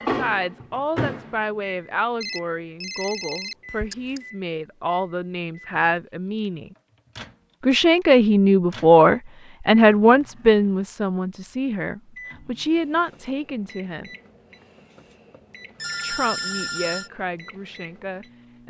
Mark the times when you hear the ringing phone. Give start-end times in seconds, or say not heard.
2.2-4.2, 15.8-17.1.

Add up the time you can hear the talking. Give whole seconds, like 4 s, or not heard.
16 s.